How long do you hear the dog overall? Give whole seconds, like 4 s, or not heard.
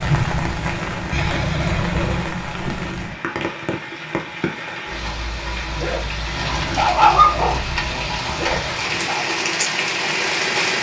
4 s.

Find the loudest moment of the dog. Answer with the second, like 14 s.
7 s.